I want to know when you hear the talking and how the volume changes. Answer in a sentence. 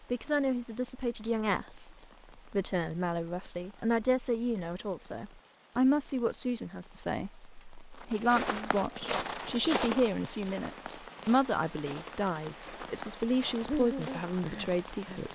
The talking can be heard from 0.1 to 15.3 s, at a steady volume.